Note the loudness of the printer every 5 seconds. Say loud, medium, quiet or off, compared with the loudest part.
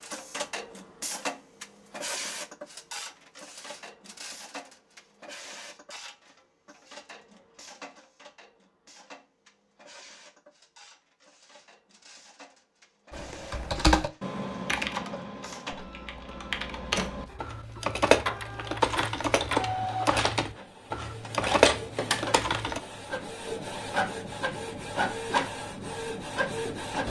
medium, quiet, quiet, medium, loud, loud.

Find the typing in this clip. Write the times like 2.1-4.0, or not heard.
13.1-22.8.